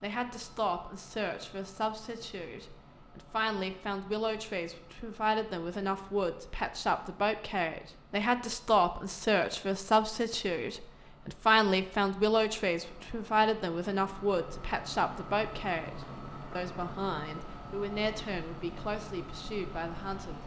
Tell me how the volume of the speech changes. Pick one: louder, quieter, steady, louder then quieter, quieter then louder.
louder then quieter.